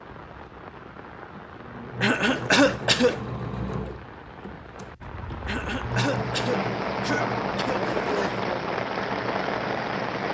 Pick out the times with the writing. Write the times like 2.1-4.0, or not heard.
not heard.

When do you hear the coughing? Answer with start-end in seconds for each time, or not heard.
2.0-3.2, 5.5-7.8.